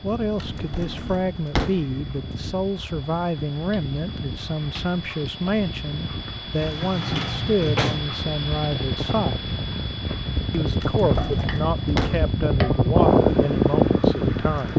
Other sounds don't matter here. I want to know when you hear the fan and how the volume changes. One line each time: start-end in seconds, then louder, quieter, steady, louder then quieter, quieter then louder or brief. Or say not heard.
0.0-14.7 louder.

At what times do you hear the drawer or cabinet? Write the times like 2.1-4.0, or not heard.
0.3-1.9, 6.6-8.1, 10.8-12.3.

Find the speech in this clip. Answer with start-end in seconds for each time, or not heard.
0.0-9.4, 10.5-14.7.